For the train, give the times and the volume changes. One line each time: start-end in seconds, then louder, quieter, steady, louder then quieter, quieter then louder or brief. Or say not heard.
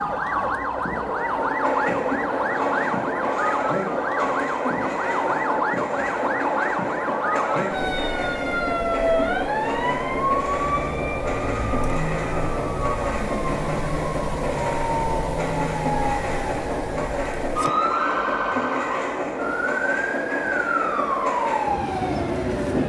0.0-22.8 steady.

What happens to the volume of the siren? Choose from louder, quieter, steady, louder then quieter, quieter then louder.
steady.